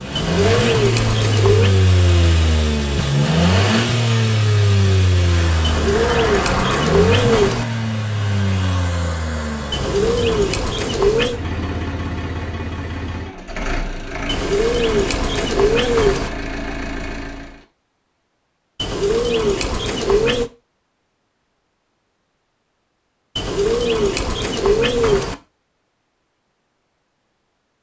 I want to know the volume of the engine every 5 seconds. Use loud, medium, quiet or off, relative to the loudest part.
loud, loud, medium, medium, off, off.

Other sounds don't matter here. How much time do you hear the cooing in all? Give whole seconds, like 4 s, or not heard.
11 s.